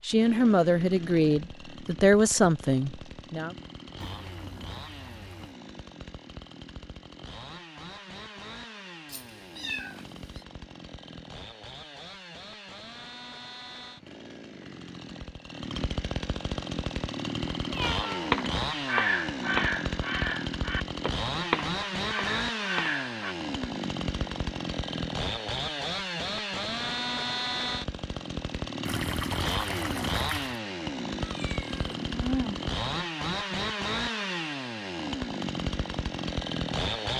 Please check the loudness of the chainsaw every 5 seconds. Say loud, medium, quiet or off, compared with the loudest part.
quiet, quiet, quiet, loud, loud, loud, loud, loud.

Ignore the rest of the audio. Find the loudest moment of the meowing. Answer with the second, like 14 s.
32 s.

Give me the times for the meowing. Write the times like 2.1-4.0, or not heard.
9.1-10.4, 17.7-18.4, 31.2-32.7.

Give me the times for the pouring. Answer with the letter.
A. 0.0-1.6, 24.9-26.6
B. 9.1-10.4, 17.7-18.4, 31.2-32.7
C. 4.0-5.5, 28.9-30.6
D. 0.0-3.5
C.